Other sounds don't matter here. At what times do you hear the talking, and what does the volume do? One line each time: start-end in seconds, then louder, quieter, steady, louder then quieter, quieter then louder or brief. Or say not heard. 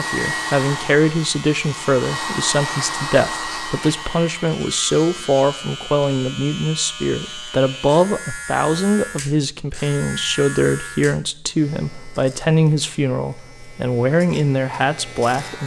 0.0-15.6 steady.